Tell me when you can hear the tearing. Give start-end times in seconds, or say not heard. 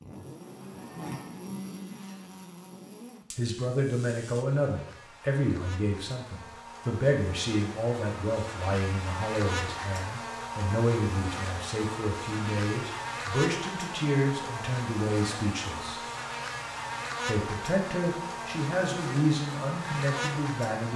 not heard.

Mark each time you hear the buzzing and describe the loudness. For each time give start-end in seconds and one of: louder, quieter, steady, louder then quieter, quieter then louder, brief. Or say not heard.
0.0-20.9 louder.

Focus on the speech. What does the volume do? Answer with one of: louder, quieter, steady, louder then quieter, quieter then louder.
steady.